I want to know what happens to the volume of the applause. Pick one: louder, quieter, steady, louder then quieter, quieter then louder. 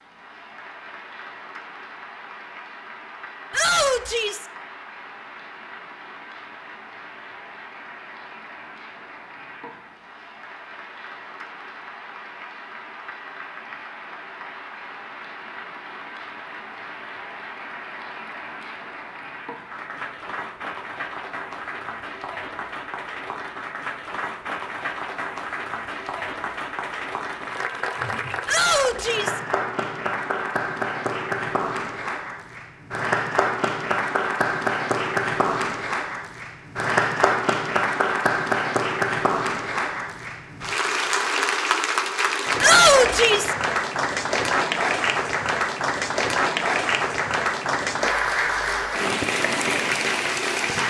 louder.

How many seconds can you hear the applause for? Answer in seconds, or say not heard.
51 s.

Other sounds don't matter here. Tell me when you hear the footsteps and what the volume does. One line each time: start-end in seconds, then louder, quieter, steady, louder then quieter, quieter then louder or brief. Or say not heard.
not heard.